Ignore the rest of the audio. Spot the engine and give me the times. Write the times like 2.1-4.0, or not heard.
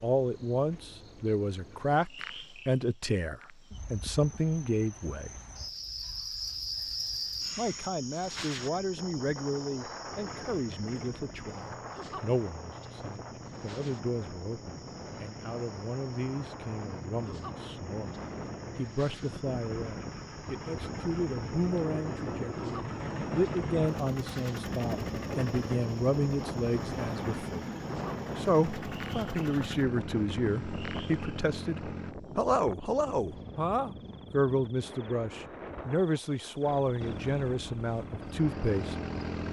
10.1-32.1, 37.0-39.4.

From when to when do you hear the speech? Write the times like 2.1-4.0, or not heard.
0.0-5.3, 7.5-18.1, 18.8-27.7, 28.4-39.0.